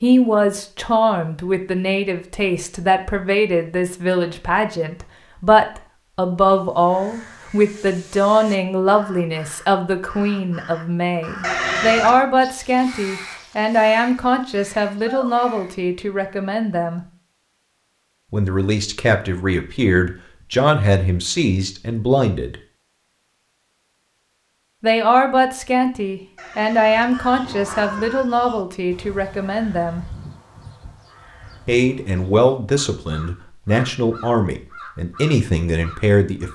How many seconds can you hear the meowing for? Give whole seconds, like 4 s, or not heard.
3 s.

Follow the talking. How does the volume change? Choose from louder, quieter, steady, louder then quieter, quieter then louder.
steady.